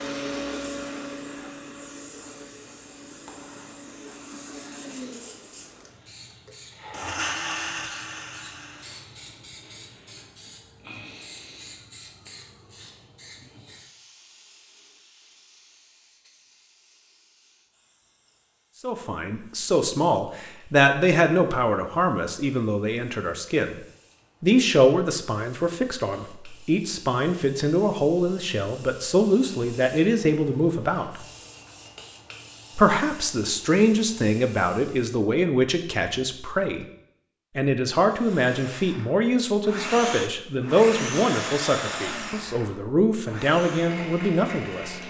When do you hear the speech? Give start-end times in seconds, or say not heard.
18.8-23.8, 24.4-31.2, 32.8-36.9, 37.5-45.0.